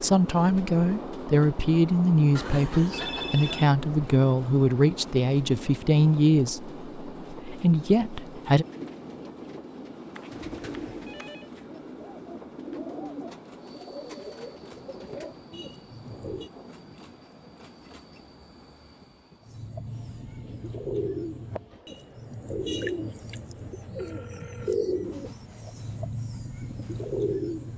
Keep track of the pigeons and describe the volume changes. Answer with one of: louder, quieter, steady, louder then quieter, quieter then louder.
louder.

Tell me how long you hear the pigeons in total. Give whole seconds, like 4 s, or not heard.
16 s.